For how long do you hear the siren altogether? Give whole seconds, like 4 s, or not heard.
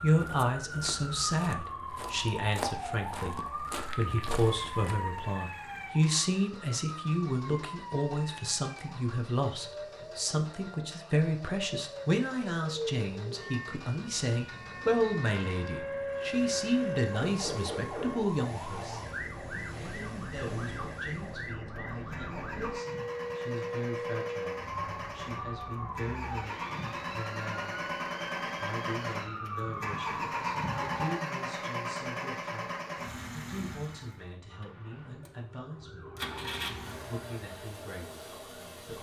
36 s.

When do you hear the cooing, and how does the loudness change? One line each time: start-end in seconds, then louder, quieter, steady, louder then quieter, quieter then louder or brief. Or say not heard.
not heard.